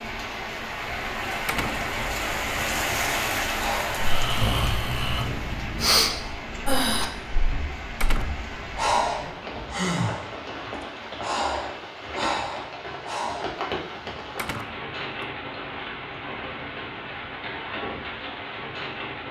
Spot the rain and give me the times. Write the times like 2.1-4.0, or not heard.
0.0-19.2.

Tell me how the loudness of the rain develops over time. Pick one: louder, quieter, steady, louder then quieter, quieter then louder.
quieter.